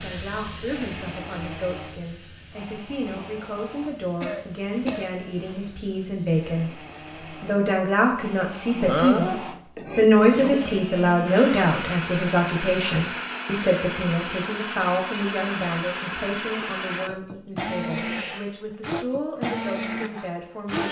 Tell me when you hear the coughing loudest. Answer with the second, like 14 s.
9 s.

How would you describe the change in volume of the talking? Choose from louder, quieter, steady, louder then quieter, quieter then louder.
louder then quieter.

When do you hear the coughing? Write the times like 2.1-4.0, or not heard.
4.2-5.1, 8.8-10.6, 17.9-18.5.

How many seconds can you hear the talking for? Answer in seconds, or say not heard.
21 s.